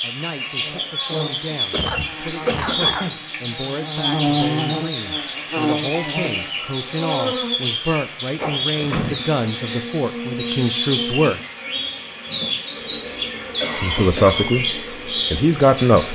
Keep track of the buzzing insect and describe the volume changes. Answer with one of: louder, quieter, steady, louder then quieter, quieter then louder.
louder then quieter.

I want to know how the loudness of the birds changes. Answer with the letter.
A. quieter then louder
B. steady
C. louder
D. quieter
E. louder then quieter
B.